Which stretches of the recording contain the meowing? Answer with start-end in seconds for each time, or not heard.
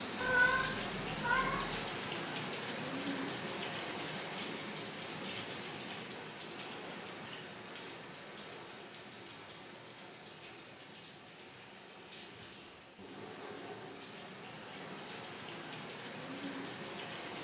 0.2-1.8.